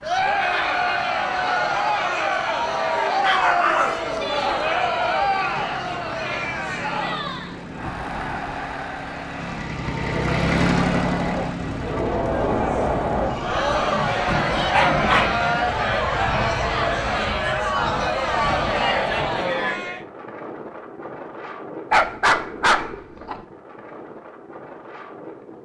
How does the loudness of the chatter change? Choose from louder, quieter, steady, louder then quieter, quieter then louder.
quieter then louder.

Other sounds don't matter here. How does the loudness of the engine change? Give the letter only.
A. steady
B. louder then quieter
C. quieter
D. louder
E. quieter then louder
B.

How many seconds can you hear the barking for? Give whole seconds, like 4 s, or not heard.
4 s.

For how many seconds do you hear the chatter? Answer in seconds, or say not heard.
20 s.